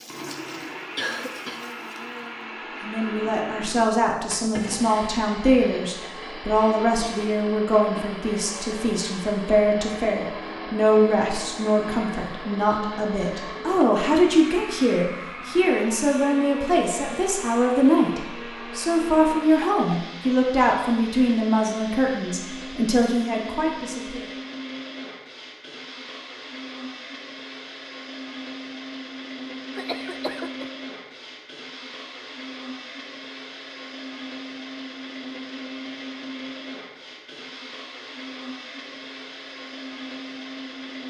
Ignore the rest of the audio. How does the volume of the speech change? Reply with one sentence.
The loudness of the speech stays about the same.